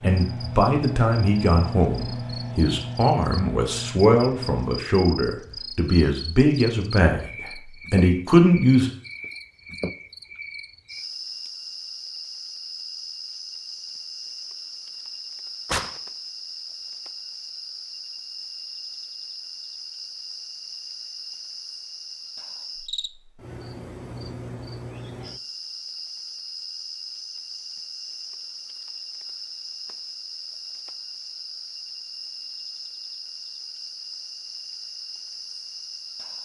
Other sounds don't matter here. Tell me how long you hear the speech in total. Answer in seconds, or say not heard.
9 s.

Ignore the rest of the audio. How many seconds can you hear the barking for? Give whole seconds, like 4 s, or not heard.
not heard.